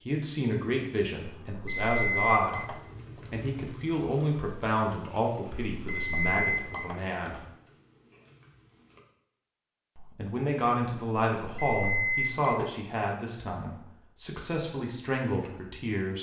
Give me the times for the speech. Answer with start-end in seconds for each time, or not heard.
0.1-7.4, 9.9-16.1.